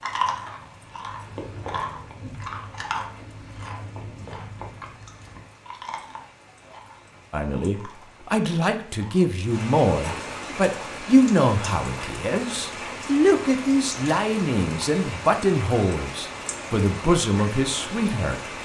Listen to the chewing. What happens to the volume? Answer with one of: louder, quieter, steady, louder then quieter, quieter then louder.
quieter.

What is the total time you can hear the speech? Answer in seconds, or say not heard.
11 s.